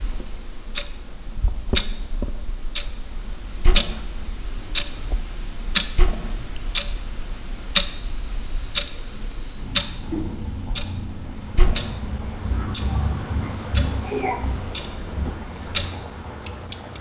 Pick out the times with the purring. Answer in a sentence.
You can't hear the purring here.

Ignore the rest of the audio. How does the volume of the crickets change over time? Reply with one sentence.
The loudness of the crickets goes up.